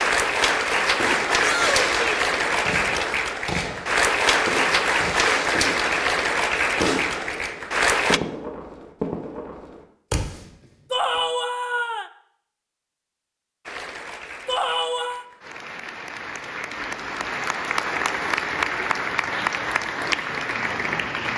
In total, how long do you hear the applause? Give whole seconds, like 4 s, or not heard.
16 s.